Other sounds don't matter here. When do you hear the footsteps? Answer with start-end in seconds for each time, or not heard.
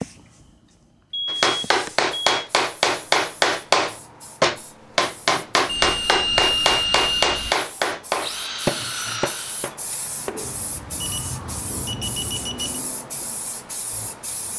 not heard.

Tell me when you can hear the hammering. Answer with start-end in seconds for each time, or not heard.
1.2-10.6.